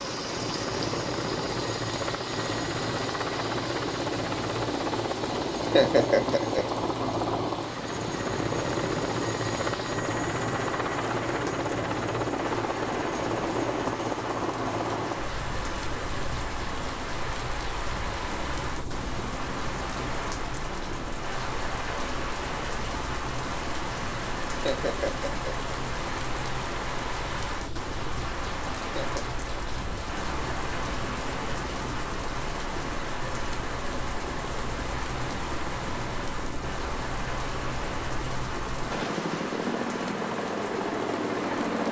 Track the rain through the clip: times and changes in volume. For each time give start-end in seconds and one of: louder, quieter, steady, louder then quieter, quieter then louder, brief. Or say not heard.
0.0-41.8 steady.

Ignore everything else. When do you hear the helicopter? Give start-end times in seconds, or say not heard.
0.0-41.8.